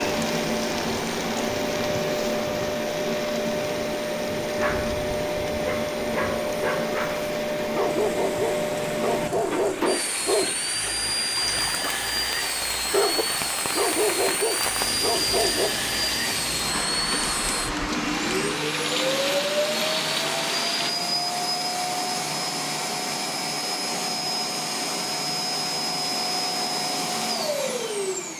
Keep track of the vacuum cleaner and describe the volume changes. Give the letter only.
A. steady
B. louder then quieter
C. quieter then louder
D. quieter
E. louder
A.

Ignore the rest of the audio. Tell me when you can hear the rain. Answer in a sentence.
You can hear the rain from 0.0 to 20.9 s.